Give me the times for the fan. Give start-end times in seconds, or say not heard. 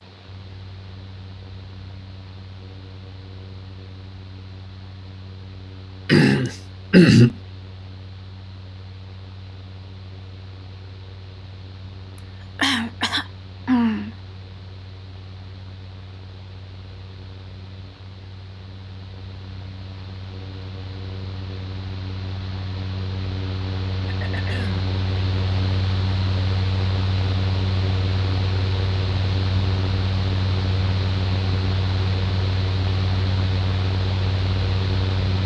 0.0-35.4.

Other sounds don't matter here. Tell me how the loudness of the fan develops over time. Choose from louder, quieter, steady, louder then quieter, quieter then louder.
louder.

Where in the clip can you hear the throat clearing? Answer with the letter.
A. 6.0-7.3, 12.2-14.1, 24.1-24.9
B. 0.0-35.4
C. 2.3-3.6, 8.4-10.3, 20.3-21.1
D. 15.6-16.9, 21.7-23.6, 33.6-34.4
A.